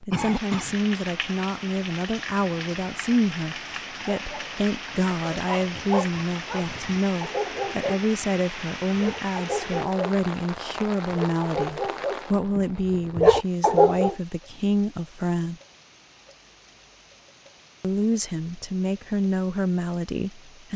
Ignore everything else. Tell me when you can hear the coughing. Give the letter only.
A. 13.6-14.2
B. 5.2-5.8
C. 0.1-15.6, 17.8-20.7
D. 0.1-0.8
D.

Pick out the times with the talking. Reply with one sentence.
The talking can be heard from 0.1 to 15.6 s and from 17.8 to 20.7 s.